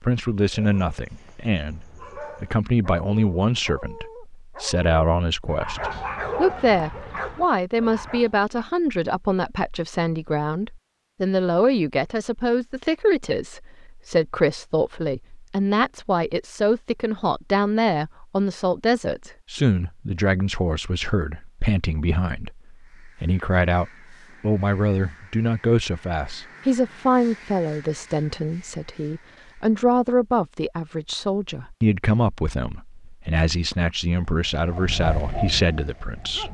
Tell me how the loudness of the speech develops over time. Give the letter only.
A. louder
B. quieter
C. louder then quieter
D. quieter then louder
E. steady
E.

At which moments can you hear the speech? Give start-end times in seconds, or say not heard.
0.0-36.4.